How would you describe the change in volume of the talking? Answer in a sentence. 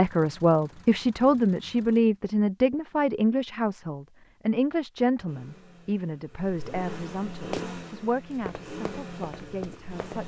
The volume of the talking goes down.